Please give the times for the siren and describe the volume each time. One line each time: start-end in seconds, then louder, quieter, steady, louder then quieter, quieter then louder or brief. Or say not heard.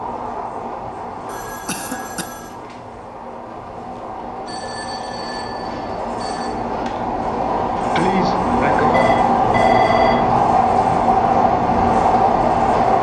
not heard.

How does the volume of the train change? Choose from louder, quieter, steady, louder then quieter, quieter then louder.
louder.